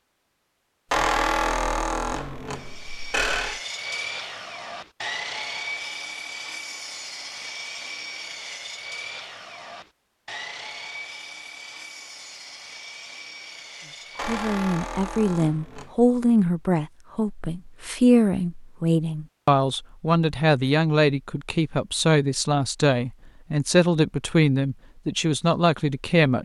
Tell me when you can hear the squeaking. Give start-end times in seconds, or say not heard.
0.9-3.6, 14.2-16.0.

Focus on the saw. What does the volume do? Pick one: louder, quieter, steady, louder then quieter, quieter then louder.
quieter.